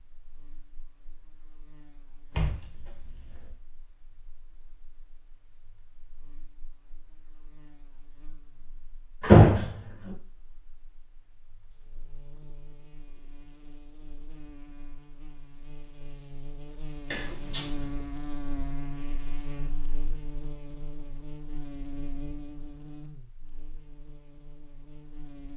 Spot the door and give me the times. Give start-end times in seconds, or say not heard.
2.3-3.5, 9.2-9.7, 17.1-17.9.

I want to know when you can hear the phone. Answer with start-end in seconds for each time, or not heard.
not heard.